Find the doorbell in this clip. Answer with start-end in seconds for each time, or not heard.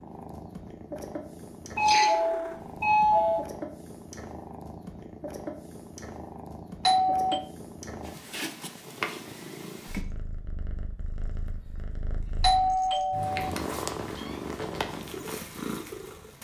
1.8-3.5, 6.8-7.5, 12.4-13.5.